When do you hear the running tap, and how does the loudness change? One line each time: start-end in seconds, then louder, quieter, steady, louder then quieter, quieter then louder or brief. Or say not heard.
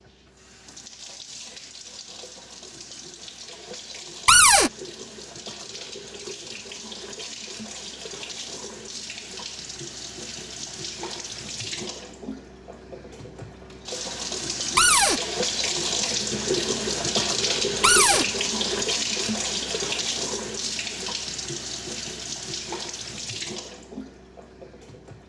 0.0-25.2 louder then quieter.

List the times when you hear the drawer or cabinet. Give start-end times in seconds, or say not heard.
4.2-4.7, 14.8-15.2, 17.8-18.2.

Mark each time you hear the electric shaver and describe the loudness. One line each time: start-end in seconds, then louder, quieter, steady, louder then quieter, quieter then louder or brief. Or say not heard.
not heard.